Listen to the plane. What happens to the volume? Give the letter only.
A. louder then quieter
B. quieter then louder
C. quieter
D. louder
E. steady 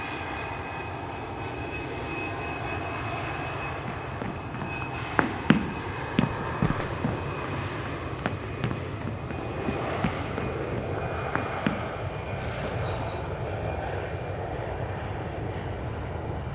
E.